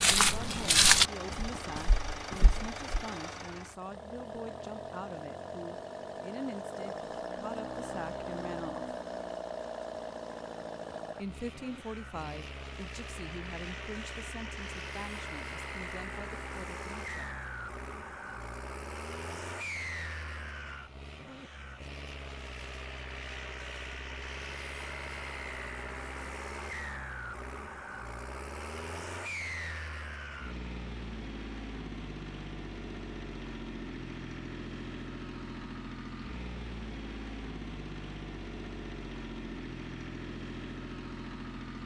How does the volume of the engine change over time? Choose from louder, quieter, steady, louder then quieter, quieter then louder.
steady.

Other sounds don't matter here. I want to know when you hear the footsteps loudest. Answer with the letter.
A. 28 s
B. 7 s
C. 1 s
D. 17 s
C.